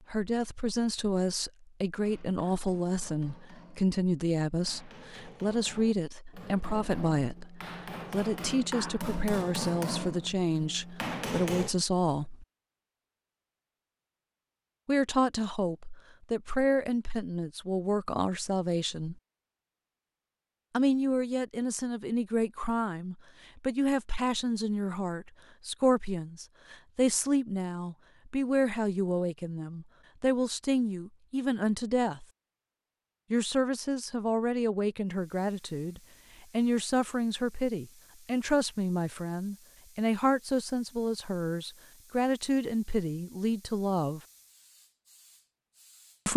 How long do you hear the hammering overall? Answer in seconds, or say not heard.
10 s.